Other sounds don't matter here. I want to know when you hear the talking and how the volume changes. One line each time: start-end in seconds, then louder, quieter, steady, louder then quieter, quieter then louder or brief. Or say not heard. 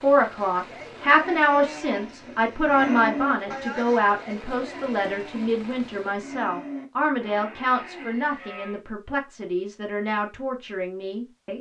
0.0-11.5 quieter.